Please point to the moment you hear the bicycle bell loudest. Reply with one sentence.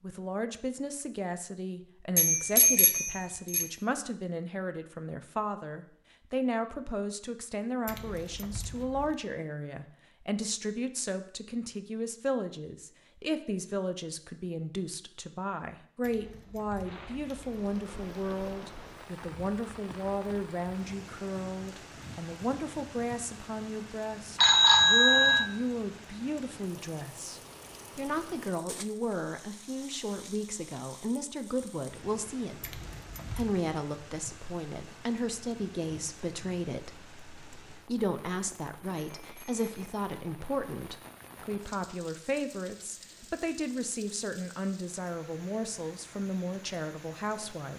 The volume of the bicycle bell peaks at 25 seconds.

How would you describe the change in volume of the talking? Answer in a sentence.
The loudness of the talking stays about the same.